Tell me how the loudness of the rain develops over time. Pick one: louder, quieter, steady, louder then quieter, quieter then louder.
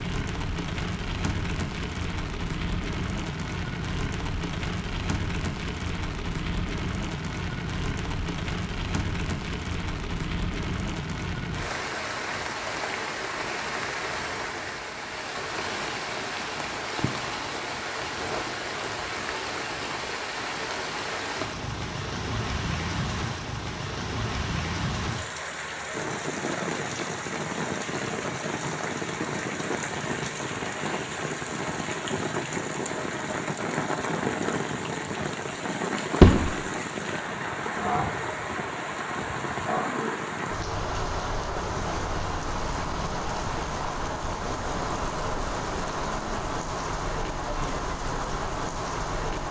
steady.